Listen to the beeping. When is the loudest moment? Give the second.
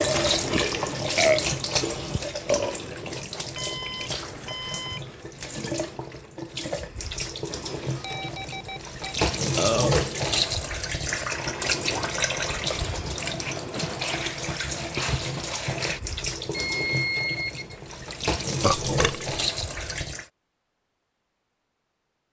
17 s.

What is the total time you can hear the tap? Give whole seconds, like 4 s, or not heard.
20 s.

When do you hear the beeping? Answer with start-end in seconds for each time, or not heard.
3.5-5.0, 8.0-9.2, 16.5-17.8.